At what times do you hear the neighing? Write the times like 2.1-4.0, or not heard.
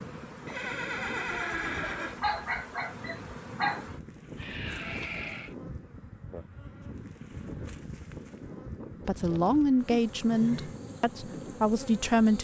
0.5-2.2, 4.3-5.5, 9.1-10.8.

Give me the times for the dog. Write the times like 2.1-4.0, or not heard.
2.2-3.9.